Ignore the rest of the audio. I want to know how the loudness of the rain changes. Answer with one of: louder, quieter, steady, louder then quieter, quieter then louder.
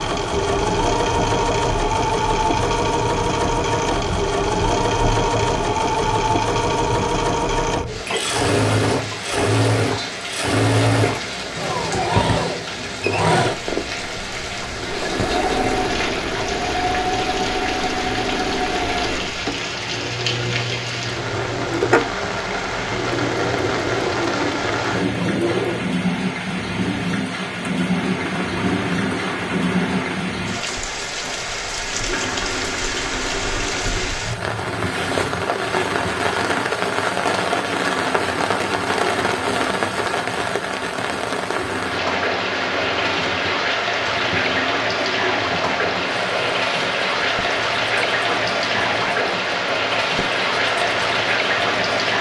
louder.